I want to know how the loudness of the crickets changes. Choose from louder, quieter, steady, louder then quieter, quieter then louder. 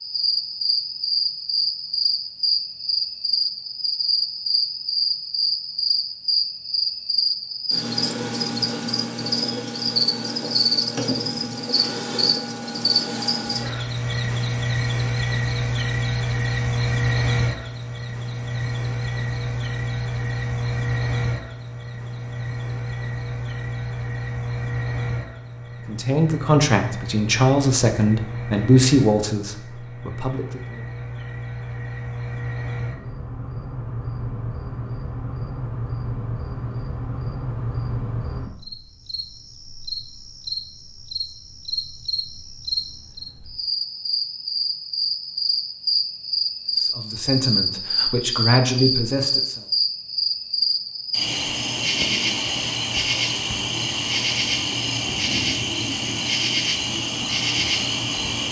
quieter then louder.